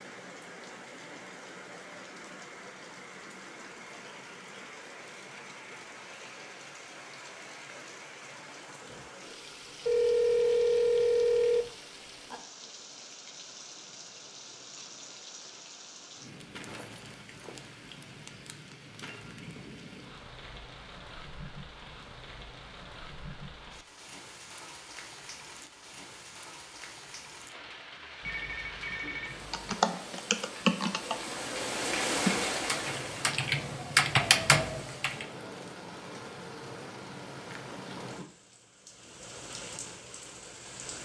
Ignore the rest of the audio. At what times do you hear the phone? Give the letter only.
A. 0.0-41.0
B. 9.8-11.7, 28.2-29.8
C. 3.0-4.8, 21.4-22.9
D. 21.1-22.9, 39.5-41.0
B.